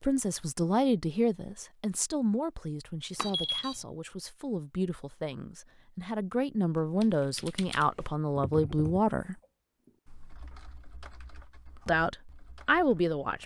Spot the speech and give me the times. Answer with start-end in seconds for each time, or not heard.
0.0-9.3, 11.8-13.4.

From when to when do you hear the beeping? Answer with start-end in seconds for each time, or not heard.
3.1-3.8.